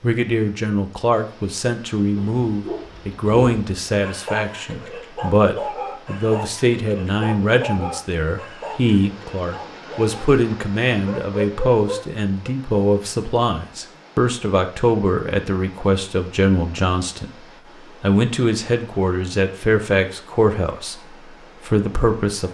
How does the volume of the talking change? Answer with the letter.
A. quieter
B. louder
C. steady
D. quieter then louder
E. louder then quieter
C.